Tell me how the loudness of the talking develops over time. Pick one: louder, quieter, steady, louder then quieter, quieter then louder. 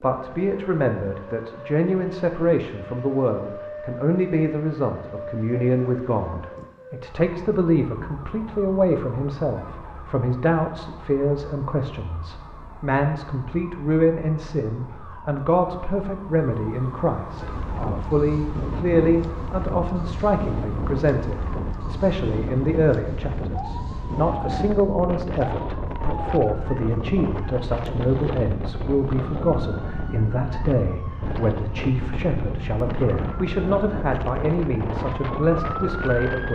steady.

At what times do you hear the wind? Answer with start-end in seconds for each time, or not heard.
17.3-36.5.